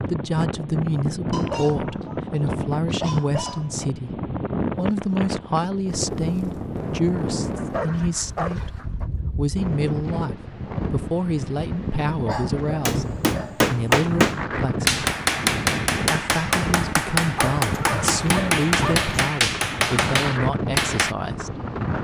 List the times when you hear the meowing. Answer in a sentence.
You can't hear the meowing here.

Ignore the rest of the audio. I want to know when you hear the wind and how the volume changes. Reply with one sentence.
You can hear the wind from 0.0 to 22.0 s, at a steady volume.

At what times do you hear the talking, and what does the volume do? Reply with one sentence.
The talking can be heard from 0.0 to 15.1 s, at a steady volume; and from 16.1 to 21.6 s, at a steady volume.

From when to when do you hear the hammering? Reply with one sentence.
The hammering can be heard from 12.8 to 21.1 s.